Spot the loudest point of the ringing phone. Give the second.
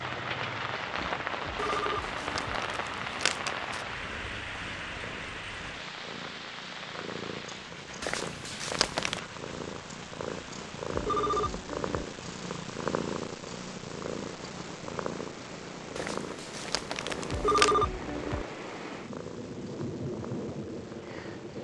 18 s.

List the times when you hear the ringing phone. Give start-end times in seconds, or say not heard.
1.4-2.6, 10.9-12.0, 17.3-18.4.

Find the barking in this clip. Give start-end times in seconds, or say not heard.
not heard.